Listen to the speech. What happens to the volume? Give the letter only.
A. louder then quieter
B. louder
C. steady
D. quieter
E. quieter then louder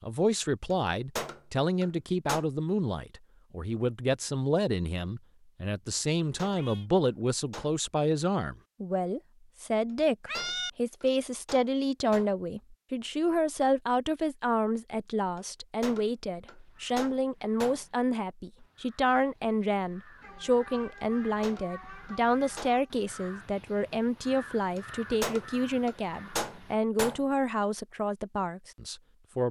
C.